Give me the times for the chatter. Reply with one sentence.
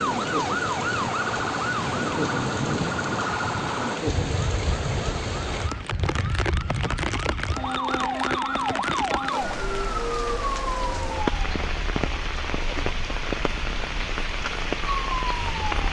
You can't hear the chatter here.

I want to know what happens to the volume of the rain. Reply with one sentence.
The volume of the rain stays about the same.